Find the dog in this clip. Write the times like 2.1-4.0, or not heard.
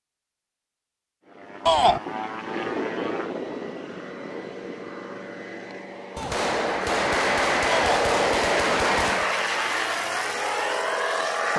not heard.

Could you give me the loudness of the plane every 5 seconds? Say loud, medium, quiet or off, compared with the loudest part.
medium, loud, loud.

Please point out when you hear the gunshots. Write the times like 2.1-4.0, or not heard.
6.2-9.3.